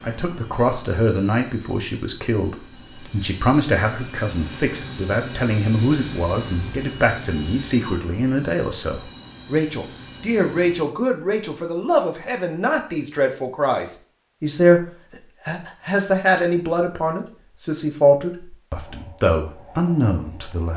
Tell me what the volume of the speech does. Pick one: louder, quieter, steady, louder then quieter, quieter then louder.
steady.